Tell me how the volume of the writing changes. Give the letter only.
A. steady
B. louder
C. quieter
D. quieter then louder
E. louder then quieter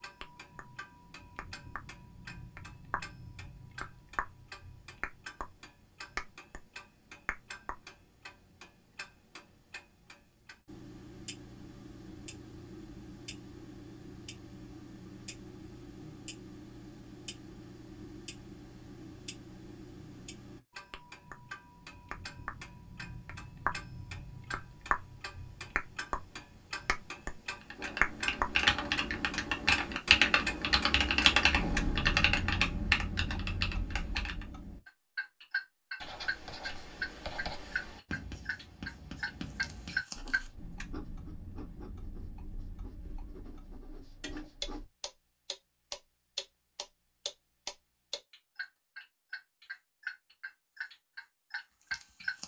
C.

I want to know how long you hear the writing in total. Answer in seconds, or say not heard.
9 s.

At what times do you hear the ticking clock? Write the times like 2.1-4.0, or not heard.
0.0-52.4.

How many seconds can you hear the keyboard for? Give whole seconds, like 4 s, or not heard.
7 s.